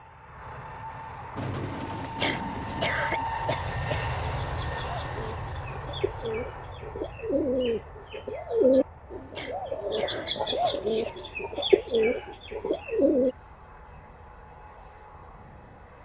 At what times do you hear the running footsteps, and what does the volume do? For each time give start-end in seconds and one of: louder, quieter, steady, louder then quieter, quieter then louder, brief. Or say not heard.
not heard.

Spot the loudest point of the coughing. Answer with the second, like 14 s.
3 s.